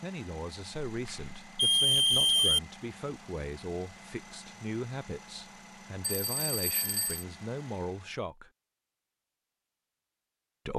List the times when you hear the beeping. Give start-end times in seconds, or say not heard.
0.9-2.6, 6.0-7.2.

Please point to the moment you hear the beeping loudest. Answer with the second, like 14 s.
2 s.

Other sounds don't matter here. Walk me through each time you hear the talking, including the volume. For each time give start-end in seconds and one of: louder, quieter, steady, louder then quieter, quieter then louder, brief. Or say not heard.
0.0-8.5 steady.